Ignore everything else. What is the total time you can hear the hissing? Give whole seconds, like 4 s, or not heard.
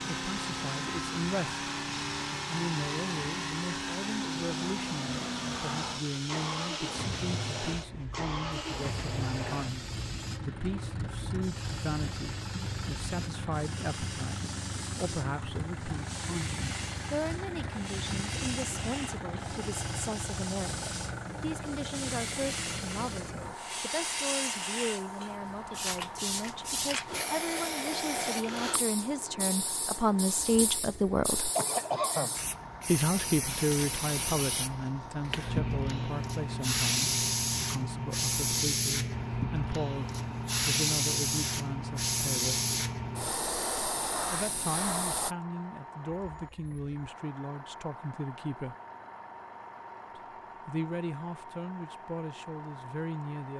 45 s.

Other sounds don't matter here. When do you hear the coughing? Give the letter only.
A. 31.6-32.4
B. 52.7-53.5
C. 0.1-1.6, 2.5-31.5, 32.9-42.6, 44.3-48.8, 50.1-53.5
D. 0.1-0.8
A.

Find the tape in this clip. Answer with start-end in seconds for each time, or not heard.
not heard.